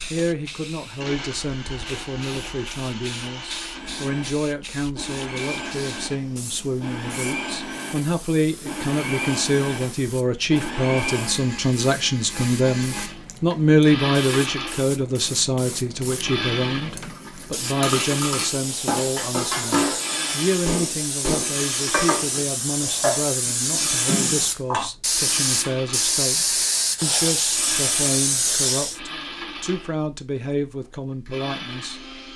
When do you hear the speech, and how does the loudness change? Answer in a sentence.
You can hear the speech from 0.1 to 32.0 s, getting louder then quieter.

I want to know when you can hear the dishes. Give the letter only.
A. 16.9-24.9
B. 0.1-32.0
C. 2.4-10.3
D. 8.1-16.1
A.